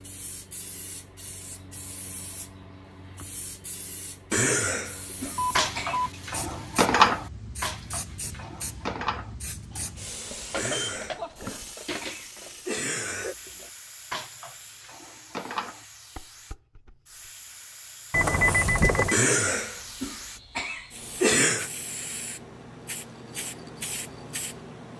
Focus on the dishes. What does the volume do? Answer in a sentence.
The loudness of the dishes goes down.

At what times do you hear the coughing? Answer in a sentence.
The coughing can be heard from 4.3 to 6.0 s, from 10.6 to 13.3 s and from 19.1 to 21.7 s.